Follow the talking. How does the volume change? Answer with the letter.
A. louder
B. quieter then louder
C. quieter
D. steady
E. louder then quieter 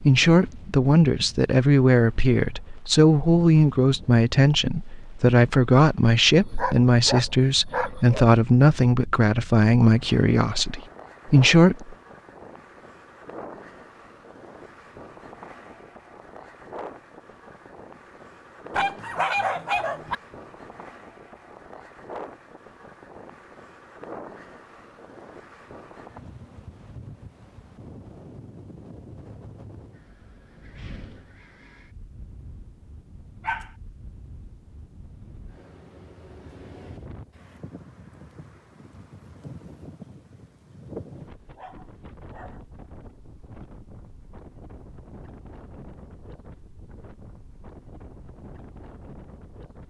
D.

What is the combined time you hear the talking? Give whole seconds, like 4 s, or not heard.
12 s.